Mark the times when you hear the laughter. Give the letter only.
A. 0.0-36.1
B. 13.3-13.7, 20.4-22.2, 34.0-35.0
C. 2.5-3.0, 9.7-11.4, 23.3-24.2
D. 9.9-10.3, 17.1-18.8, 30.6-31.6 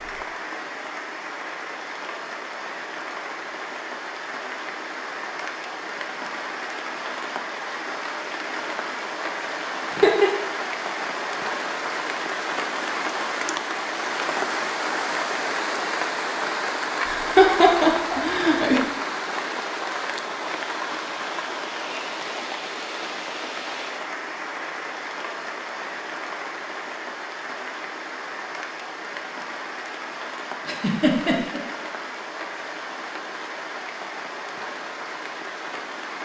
D.